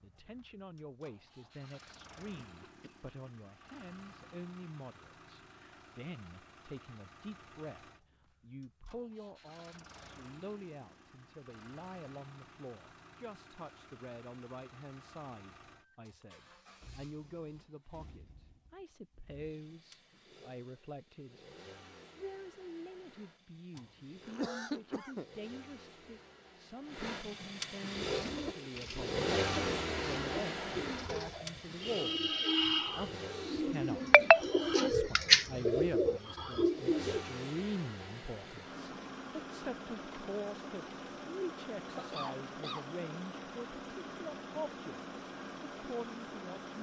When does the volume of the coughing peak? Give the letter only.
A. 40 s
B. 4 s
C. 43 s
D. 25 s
D.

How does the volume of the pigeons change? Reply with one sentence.
The volume of the pigeons goes up.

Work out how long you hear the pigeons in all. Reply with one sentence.
The pigeons can be heard for 9 seconds in total.